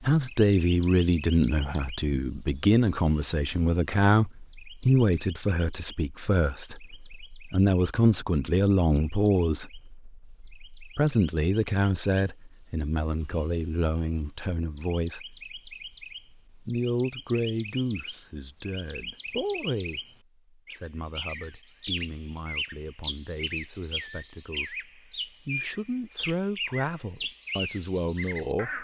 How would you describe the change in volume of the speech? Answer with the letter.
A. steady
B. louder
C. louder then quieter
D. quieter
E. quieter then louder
D.